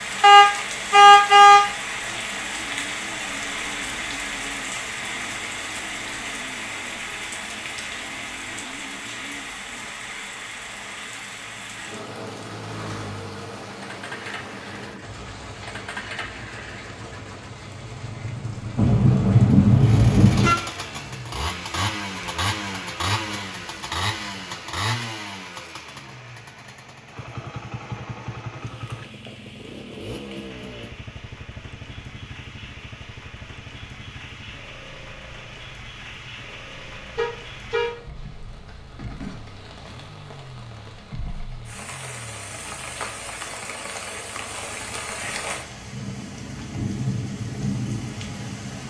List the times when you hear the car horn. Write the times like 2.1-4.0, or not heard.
0.2-1.6, 18.8-20.6, 37.1-38.3.